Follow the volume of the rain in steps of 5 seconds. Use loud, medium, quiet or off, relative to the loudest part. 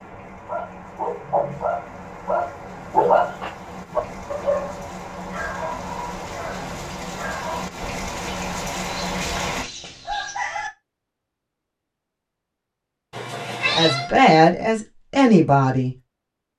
medium, loud, off, off.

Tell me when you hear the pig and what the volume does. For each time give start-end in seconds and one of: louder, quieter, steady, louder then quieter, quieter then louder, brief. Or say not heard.
not heard.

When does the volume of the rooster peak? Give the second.
10 s.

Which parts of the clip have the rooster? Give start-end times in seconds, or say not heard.
8.8-10.7.